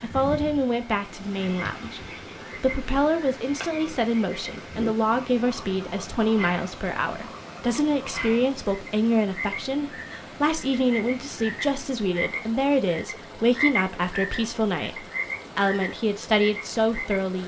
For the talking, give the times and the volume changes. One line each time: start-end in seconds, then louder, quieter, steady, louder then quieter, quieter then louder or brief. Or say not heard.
0.0-17.4 steady.